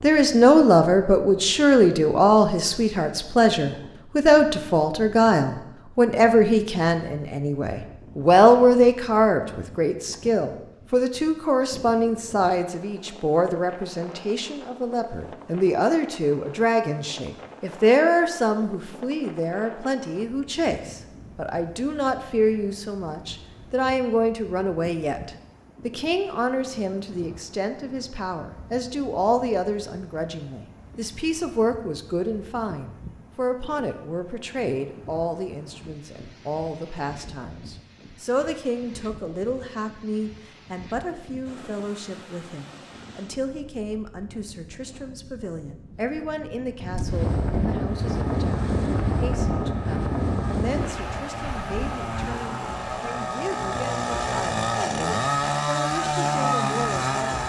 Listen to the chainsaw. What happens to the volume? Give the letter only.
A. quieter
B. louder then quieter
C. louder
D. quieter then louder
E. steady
C.